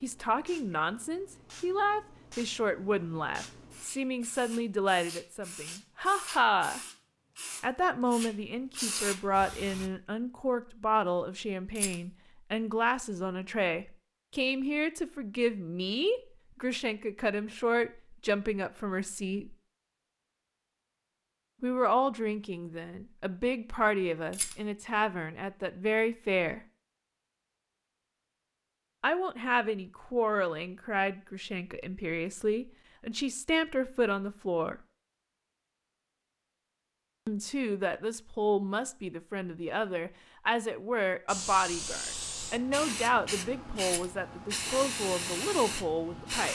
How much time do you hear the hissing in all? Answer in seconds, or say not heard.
15 s.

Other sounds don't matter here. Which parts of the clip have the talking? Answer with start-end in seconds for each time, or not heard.
0.0-6.8, 7.6-19.6, 21.6-26.6, 29.0-34.8, 37.2-46.5.